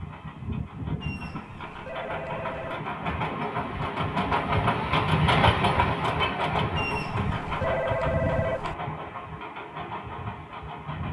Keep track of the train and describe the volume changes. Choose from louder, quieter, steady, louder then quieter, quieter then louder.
louder then quieter.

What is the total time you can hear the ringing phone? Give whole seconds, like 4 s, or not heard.
4 s.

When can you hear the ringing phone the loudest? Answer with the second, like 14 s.
8 s.